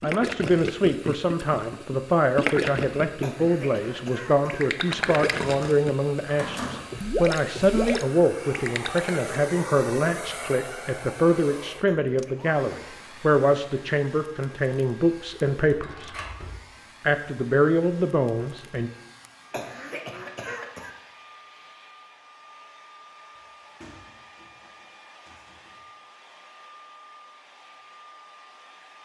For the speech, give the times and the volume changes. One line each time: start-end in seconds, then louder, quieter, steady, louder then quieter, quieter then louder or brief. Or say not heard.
0.0-16.1 steady
17.0-18.9 brief.